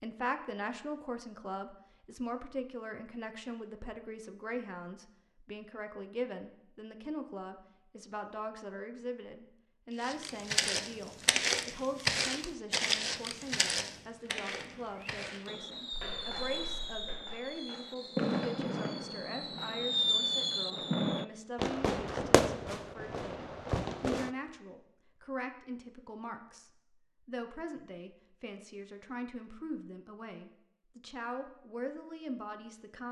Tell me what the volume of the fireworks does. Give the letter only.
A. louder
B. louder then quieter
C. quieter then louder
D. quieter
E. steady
A.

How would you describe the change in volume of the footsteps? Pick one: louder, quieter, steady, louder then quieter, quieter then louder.
quieter.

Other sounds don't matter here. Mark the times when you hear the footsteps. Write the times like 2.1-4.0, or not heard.
10.0-17.4.